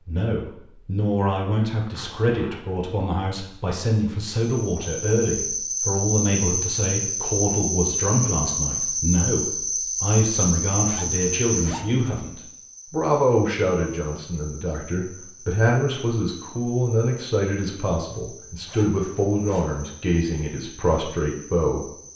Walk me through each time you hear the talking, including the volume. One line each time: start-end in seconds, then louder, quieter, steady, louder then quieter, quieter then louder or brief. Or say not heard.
0.1-21.9 steady.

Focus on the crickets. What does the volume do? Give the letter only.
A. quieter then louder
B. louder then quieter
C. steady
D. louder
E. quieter
E.